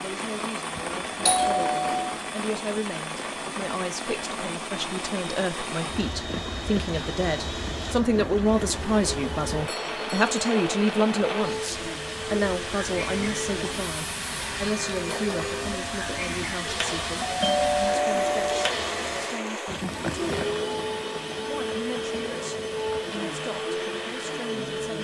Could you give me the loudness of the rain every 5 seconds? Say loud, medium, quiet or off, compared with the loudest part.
loud, loud, loud, loud, medium.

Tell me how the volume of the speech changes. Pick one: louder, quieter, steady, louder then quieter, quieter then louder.
louder then quieter.